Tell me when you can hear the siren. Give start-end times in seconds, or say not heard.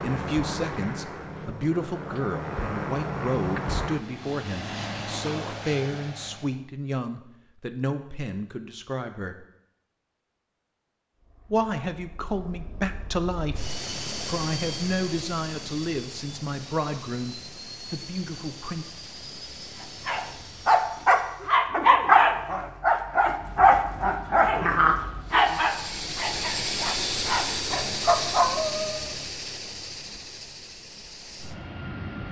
not heard.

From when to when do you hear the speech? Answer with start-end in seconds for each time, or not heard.
0.0-9.4, 11.5-18.9.